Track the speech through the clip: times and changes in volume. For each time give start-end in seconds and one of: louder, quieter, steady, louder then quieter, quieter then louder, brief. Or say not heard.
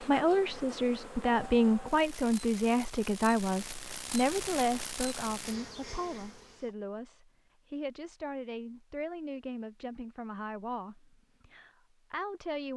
0.0-12.7 quieter.